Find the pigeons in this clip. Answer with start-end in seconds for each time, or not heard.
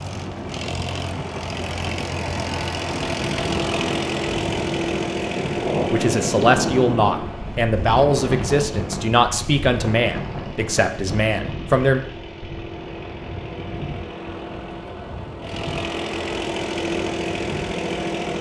not heard.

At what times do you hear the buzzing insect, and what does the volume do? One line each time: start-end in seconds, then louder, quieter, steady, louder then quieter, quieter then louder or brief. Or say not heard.
not heard.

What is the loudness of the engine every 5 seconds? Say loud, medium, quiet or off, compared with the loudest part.
loud, loud, medium, loud.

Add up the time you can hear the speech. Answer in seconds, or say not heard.
6 s.